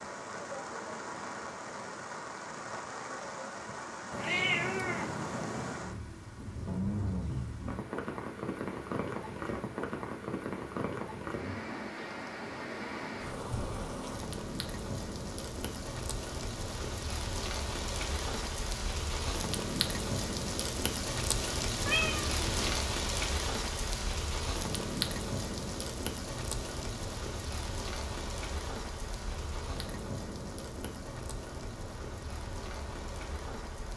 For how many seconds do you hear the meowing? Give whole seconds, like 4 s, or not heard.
3 s.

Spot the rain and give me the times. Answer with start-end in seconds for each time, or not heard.
0.0-33.9.